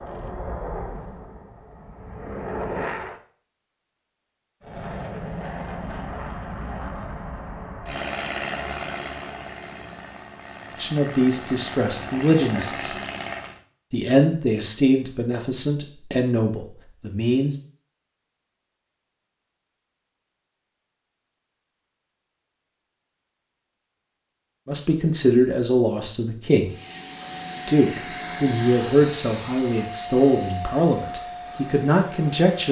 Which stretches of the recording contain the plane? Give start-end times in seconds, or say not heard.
0.0-3.2, 4.6-13.6, 26.6-32.6.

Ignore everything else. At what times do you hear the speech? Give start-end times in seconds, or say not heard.
10.8-12.9, 13.9-17.6, 24.6-26.7, 27.6-32.6.